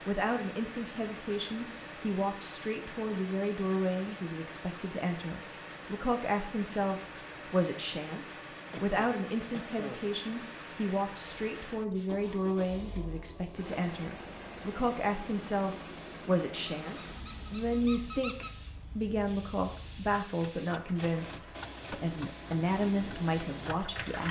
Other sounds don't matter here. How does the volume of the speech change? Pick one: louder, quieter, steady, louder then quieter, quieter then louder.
steady.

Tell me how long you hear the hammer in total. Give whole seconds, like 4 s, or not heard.
not heard.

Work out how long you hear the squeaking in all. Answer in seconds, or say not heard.
2 s.